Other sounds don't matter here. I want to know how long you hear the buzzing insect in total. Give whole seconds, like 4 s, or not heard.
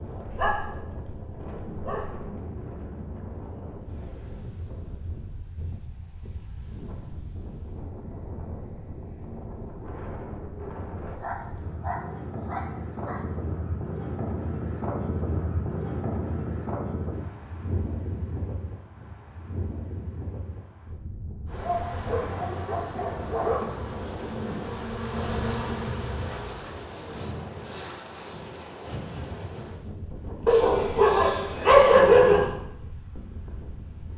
5 s.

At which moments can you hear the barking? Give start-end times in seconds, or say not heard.
0.3-2.3, 11.2-13.2, 21.6-23.6, 30.4-32.5.